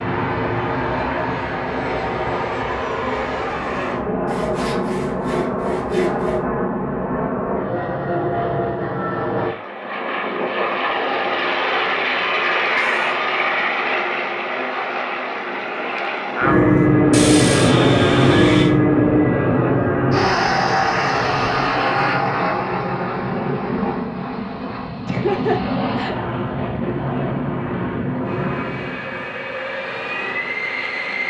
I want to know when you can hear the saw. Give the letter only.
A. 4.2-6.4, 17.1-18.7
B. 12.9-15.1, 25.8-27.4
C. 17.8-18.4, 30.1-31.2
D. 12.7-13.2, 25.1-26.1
A.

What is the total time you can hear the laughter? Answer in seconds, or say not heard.
2 s.